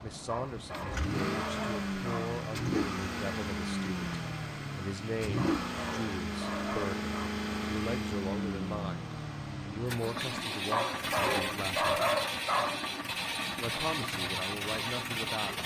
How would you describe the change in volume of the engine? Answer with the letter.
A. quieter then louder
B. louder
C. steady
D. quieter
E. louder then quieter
C.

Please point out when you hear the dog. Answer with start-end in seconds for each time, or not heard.
0.2-2.4, 5.3-7.3, 10.7-12.8.